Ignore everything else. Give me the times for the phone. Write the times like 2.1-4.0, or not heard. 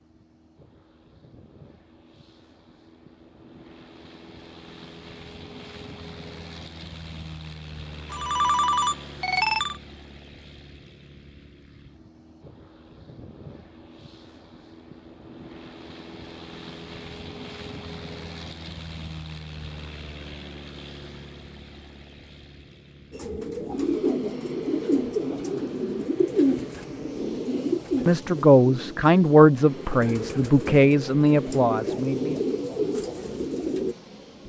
8.1-9.8.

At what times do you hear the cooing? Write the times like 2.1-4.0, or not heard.
23.1-34.0.